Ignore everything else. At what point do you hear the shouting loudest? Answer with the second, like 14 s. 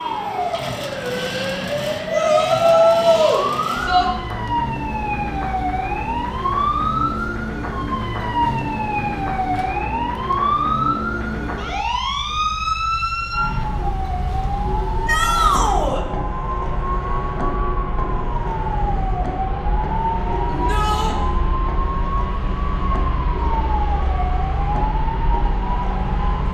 3 s.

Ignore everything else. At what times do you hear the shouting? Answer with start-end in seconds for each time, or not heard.
2.1-4.0, 15.1-16.1, 20.4-21.1.